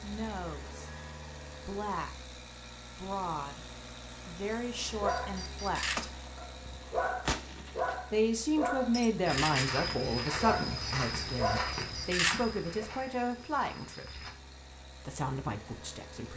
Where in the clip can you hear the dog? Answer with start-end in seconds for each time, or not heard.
4.5-12.8.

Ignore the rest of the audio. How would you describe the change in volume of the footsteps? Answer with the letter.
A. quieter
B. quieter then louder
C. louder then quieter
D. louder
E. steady
A.